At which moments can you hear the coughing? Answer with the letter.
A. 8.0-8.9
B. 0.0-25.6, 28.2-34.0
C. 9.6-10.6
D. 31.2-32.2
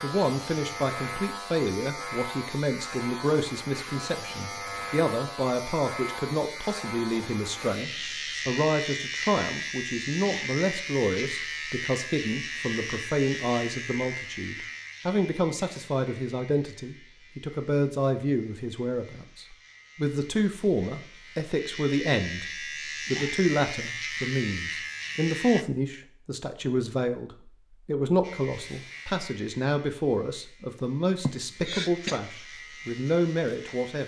D.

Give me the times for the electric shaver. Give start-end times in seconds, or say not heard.
0.0-25.6, 28.2-34.0.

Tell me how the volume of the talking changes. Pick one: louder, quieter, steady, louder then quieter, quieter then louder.
steady.